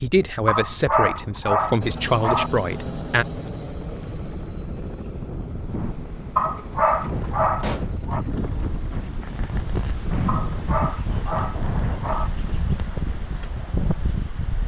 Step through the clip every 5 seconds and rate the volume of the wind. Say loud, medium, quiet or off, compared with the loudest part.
quiet, loud, loud.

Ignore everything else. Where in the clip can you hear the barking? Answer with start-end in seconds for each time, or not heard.
0.5-2.5, 6.3-8.2, 10.2-12.3.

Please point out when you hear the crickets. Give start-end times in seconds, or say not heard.
not heard.